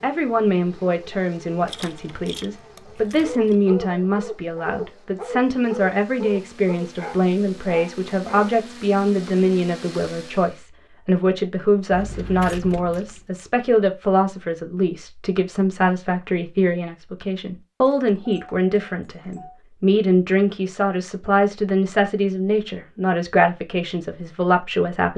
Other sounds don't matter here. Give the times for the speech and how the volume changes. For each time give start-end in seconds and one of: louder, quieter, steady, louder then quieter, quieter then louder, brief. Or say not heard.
0.0-25.1 steady.